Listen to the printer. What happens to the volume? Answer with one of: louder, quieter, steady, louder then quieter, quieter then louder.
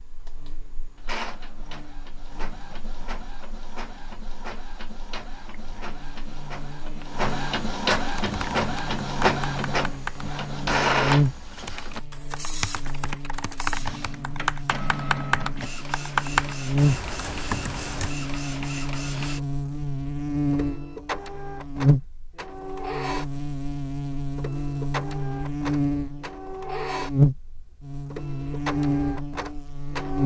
louder then quieter.